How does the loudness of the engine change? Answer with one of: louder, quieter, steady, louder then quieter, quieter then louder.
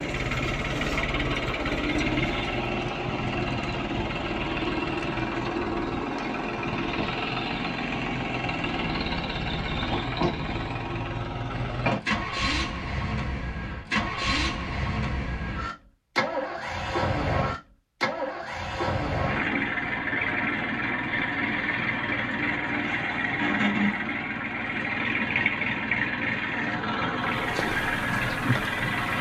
steady.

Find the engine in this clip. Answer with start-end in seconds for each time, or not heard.
0.0-29.1.